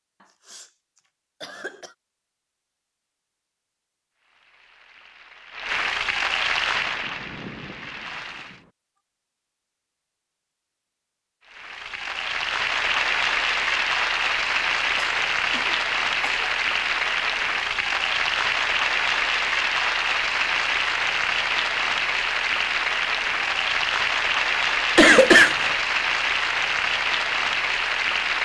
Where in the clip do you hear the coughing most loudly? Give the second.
25 s.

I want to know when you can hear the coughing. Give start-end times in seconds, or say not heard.
0.2-0.7, 1.4-1.9, 14.9-16.5, 24.9-25.8.